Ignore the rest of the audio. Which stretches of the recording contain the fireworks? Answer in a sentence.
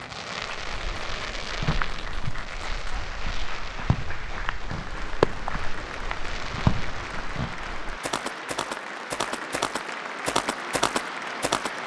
The fireworks can be heard from 0.0 to 7.5 s.